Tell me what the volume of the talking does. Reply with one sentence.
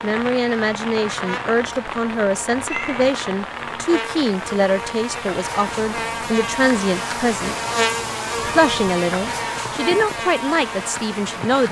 The loudness of the talking stays about the same.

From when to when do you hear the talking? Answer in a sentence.
You can hear the talking from 0.0 to 7.5 s and from 8.6 to 11.6 s.